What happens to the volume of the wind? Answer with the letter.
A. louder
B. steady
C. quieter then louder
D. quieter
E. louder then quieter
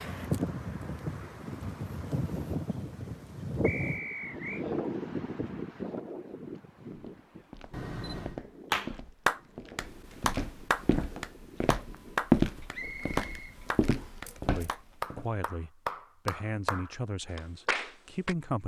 D.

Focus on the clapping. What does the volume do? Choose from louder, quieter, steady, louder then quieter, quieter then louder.
quieter.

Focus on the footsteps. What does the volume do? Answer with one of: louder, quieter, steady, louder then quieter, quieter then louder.
louder then quieter.